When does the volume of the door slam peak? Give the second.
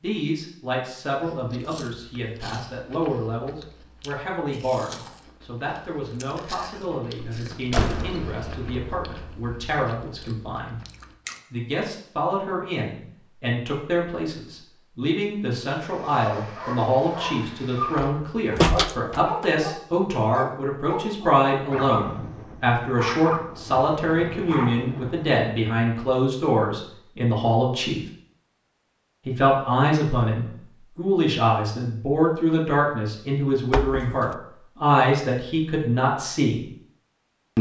19 s.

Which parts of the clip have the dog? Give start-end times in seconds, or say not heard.
15.8-25.3.